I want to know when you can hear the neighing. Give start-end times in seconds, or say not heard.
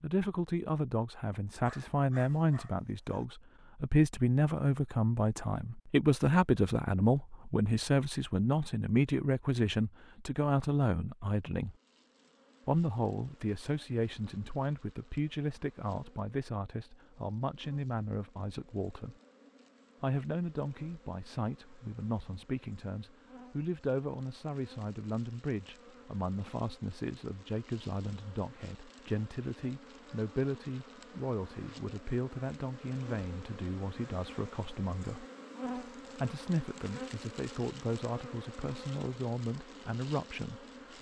not heard.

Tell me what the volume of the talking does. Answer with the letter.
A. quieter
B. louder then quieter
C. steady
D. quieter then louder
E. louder
A.